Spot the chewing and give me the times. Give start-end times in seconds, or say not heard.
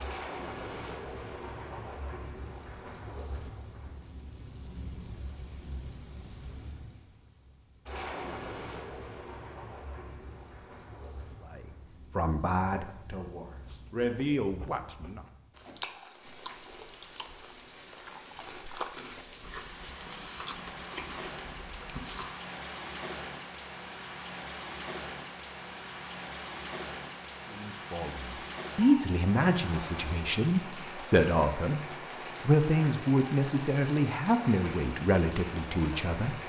13.6-22.4.